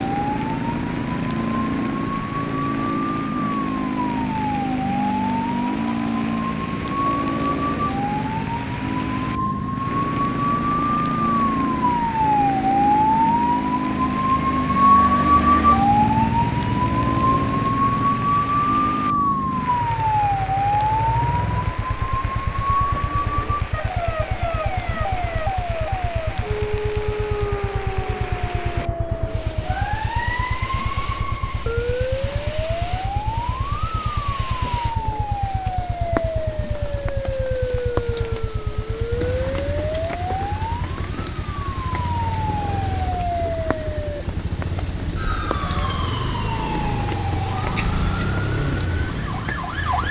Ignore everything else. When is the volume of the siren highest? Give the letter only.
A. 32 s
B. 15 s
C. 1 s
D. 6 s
B.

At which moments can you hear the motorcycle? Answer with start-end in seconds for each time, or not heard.
0.0-50.0.